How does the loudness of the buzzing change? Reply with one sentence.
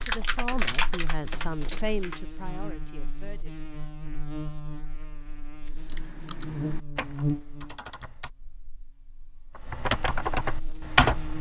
The loudness of the buzzing goes up, then down.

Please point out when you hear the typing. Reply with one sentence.
You can hear the typing from 0.0 to 2.2 s, from 5.7 to 8.3 s and from 9.6 to 11.3 s.